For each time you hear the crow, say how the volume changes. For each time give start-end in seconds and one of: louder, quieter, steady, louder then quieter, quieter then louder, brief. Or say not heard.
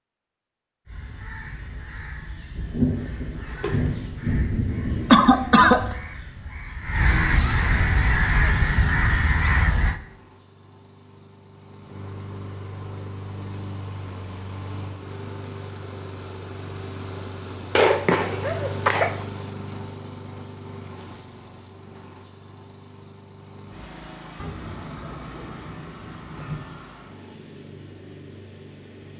0.8-10.0 louder.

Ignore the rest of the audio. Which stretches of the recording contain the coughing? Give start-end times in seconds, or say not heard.
5.1-6.0, 17.8-19.1.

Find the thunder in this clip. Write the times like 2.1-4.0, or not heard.
2.5-5.9, 24.4-27.0.